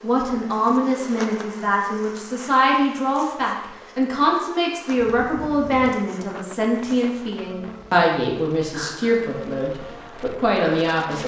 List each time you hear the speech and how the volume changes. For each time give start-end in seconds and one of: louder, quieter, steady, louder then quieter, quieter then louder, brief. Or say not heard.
0.0-11.2 steady.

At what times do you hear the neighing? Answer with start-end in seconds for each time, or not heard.
not heard.